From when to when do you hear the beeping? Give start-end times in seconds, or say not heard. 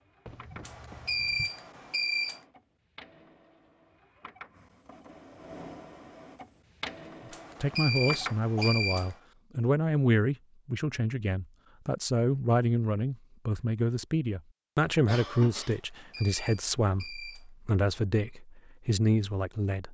0.6-2.4, 7.3-9.2, 15.7-17.4.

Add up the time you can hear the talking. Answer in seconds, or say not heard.
12 s.